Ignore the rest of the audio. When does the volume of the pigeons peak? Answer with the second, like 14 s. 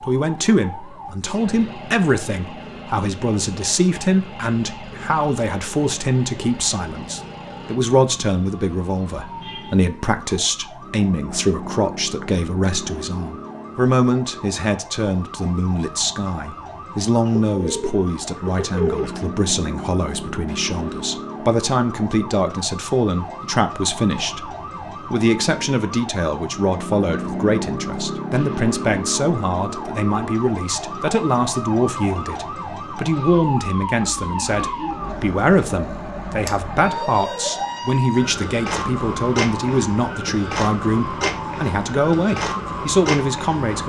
19 s.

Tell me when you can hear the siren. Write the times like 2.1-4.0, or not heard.
0.0-43.8.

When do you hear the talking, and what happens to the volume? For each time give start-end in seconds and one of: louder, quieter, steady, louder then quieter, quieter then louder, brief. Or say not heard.
0.0-43.8 steady.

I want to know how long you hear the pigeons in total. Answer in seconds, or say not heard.
2 s.